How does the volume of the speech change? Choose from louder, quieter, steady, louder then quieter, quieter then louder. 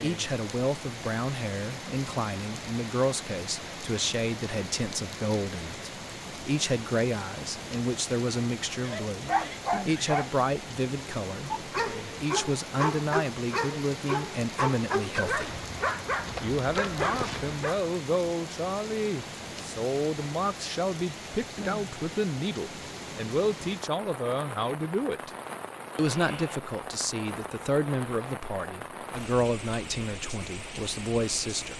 steady.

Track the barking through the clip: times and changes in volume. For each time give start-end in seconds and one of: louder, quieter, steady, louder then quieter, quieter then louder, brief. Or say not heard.
8.8-10.3 brief
11.5-17.9 steady.